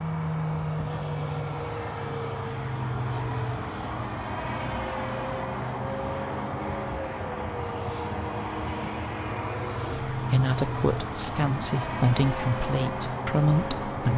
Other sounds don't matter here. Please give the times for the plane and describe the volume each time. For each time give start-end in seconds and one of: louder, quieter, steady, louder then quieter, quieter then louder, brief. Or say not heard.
0.0-14.1 steady.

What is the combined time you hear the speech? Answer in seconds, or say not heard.
4 s.